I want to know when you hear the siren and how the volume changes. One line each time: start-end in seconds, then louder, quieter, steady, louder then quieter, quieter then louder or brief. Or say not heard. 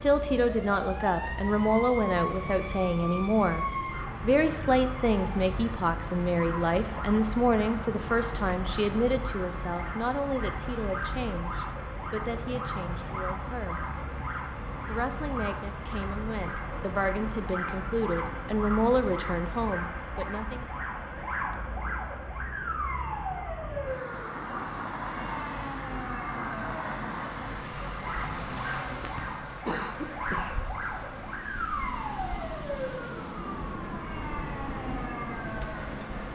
0.0-36.3 steady.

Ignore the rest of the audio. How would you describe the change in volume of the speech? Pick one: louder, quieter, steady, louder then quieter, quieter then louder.
quieter then louder.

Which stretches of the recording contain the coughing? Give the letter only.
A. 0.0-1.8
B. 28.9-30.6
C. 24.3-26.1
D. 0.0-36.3
B.